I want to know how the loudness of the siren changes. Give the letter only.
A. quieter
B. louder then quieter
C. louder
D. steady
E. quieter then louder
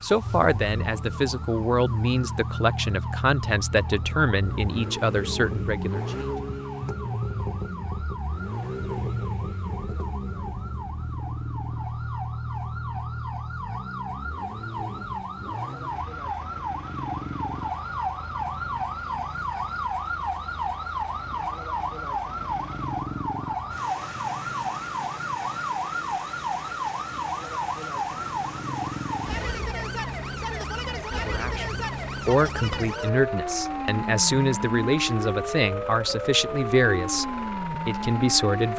C.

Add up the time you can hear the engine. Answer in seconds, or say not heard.
39 s.